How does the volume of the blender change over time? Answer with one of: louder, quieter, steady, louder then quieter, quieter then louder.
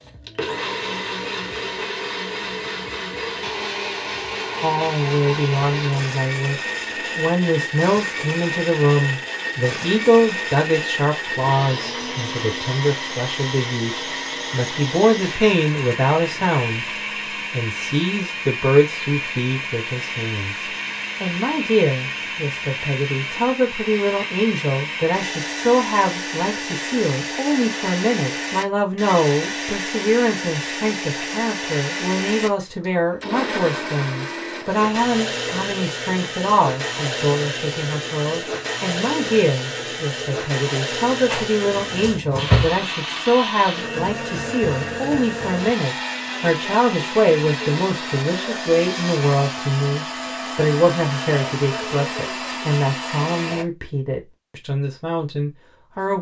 steady.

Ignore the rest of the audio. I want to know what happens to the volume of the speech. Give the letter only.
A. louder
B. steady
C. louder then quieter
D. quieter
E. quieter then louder
B.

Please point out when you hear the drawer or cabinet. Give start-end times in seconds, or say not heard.
41.2-42.8.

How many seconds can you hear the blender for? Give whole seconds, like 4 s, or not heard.
54 s.